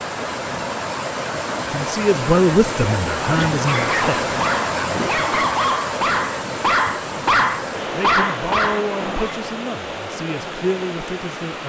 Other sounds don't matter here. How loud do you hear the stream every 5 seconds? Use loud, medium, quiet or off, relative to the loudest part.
loud, loud, medium.